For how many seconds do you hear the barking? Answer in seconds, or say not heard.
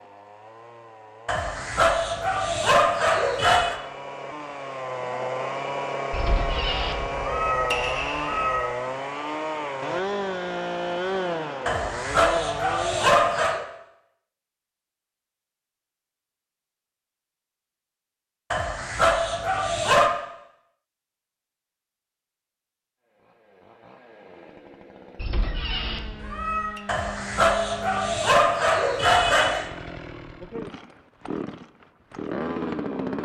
9 s.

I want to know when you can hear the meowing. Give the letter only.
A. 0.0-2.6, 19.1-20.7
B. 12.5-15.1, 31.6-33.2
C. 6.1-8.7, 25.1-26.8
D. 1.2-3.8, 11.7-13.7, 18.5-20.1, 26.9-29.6
C.